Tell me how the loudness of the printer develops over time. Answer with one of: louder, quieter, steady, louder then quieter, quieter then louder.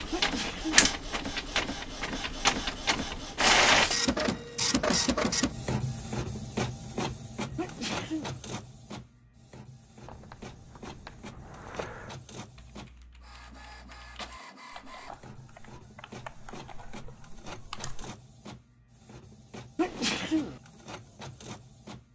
quieter.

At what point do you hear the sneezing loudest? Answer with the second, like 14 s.
20 s.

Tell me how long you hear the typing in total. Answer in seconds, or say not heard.
8 s.